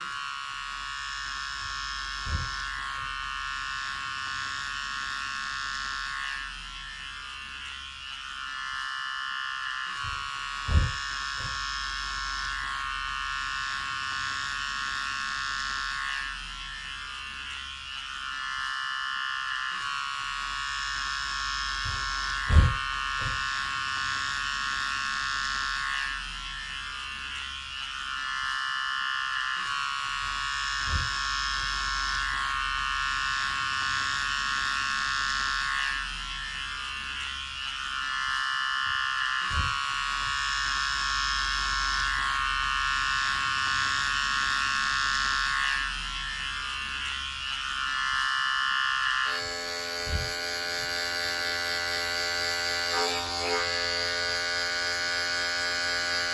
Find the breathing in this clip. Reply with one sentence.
You can hear the breathing from 1.6 to 3.1 s, from 10.0 to 11.6 s, from 21.9 to 23.4 s, from 30.2 to 31.8 s, from 38.9 to 40.4 s and from 49.4 to 51.0 s.